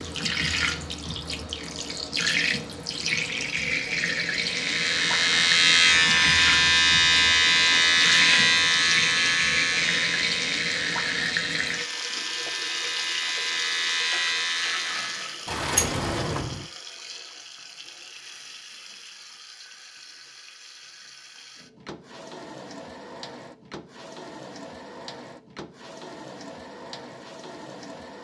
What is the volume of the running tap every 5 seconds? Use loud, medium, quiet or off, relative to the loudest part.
loud, loud, loud, quiet, quiet, quiet.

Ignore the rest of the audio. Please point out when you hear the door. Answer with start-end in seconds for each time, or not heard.
15.4-16.6.